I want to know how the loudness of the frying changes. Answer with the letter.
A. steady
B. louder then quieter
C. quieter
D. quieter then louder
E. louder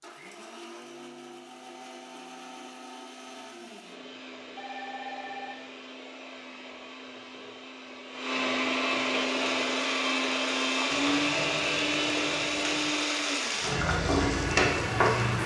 E.